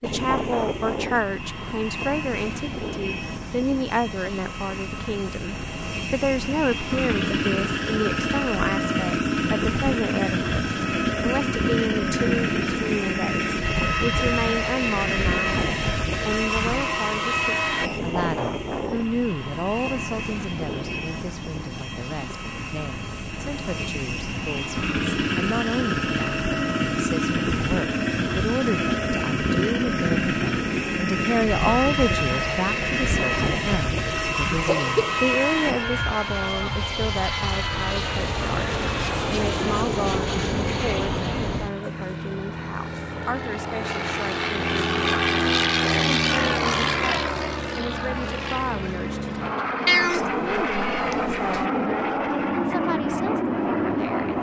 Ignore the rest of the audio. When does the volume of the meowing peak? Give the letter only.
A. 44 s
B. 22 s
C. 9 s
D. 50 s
D.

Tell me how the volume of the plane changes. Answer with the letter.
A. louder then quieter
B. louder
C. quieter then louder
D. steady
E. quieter
D.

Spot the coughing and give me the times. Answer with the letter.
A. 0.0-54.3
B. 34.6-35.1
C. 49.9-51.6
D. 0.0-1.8
B.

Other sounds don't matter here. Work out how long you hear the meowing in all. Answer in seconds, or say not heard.
2 s.